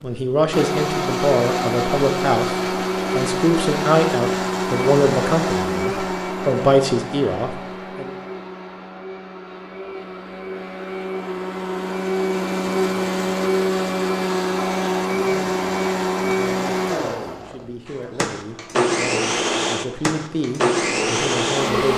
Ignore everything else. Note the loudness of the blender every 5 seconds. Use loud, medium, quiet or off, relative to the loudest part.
loud, medium, loud, loud, loud.